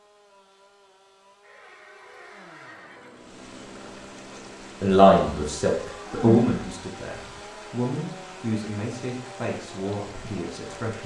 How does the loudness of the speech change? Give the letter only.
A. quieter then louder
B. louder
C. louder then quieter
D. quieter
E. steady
D.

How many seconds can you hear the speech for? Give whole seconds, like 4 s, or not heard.
6 s.